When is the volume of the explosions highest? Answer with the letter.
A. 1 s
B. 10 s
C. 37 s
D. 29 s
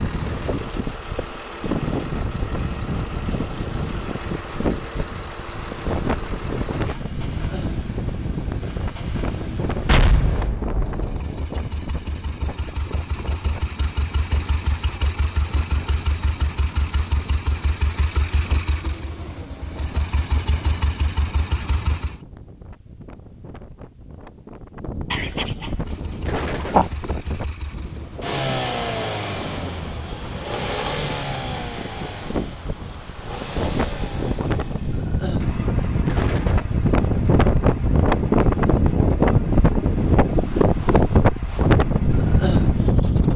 B.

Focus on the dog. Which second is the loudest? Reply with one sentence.
The volume of the dog peaks at 27 seconds.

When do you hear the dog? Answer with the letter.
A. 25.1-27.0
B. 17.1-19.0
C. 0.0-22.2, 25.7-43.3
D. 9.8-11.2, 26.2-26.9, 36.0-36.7
A.